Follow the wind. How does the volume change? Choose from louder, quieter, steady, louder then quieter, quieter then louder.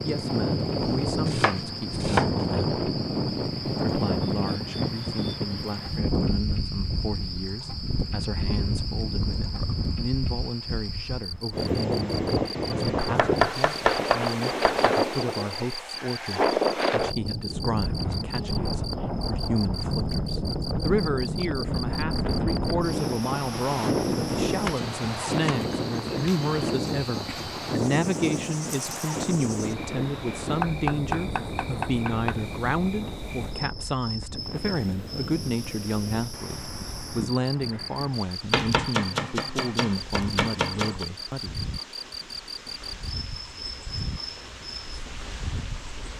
quieter.